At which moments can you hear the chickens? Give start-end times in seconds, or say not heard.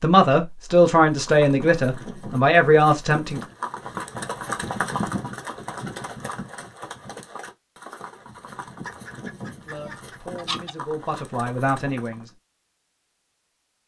8.8-10.7.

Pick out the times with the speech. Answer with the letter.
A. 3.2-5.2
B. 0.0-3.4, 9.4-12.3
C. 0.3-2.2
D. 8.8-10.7
B.